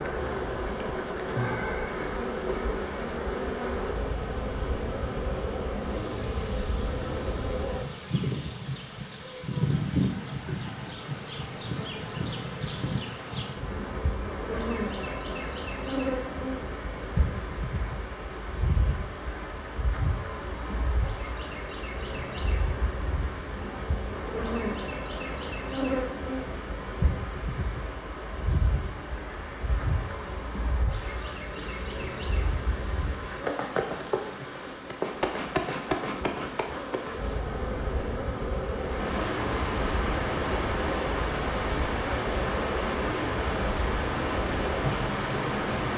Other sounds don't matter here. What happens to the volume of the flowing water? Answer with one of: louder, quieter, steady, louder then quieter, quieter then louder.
louder.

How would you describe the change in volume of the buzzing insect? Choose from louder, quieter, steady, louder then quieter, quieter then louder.
steady.